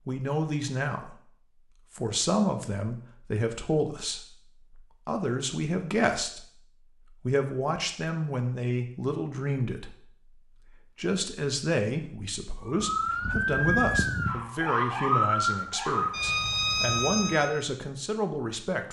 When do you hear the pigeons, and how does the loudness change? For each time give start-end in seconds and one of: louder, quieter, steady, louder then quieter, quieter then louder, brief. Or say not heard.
not heard.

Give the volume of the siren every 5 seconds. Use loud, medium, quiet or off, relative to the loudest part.
off, off, loud, loud.